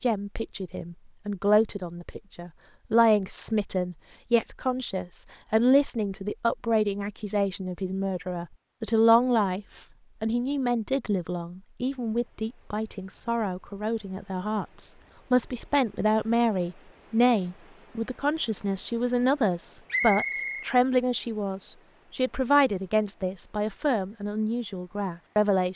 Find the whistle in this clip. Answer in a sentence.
You can hear the whistle from 19.9 to 20.6 s.